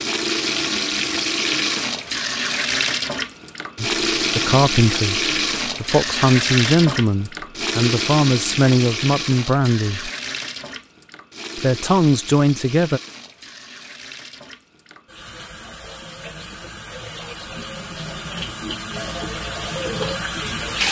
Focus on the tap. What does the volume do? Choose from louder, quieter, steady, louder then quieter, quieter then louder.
quieter then louder.